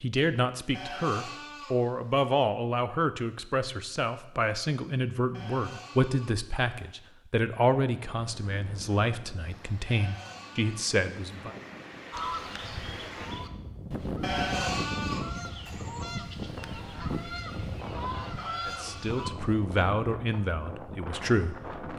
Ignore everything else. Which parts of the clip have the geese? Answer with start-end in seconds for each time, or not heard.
12.1-19.3.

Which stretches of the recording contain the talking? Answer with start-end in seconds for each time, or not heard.
0.0-11.6, 18.6-21.9.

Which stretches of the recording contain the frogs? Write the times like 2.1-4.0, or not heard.
not heard.